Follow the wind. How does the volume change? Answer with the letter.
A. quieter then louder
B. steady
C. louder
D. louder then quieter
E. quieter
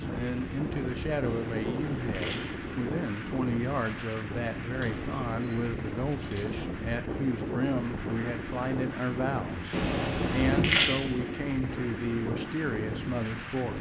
B.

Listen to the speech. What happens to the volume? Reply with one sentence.
The volume of the speech stays about the same.